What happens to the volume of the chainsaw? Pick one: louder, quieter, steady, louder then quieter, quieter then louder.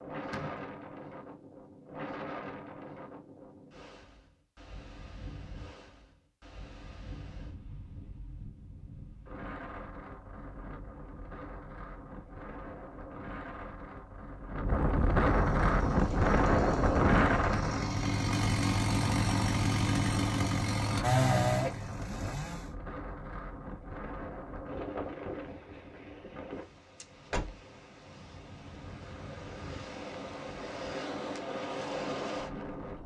louder.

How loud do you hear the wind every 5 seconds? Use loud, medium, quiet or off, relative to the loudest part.
quiet, quiet, quiet, loud, quiet, quiet, medium.